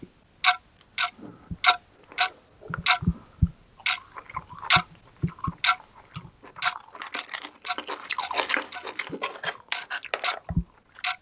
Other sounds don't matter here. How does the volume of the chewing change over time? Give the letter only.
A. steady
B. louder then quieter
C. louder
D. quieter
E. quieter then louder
C.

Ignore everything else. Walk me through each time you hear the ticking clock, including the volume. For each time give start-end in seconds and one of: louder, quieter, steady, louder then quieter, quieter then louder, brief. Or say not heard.
0.0-11.1 quieter.